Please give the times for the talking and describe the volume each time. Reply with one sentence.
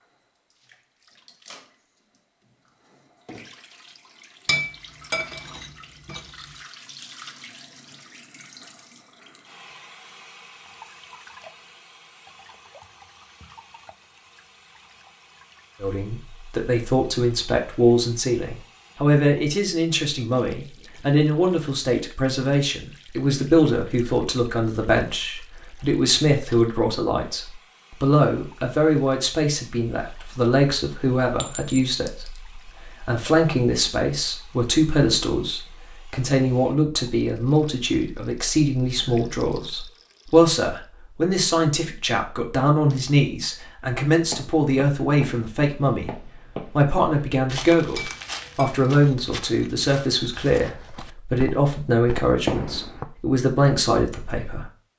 You can hear the talking from 15.8 to 54.6 s, at a steady volume.